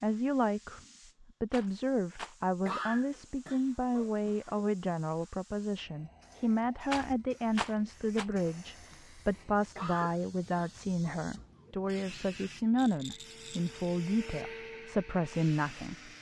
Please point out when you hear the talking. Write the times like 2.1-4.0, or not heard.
0.0-16.1.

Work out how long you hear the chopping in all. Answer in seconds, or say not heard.
not heard.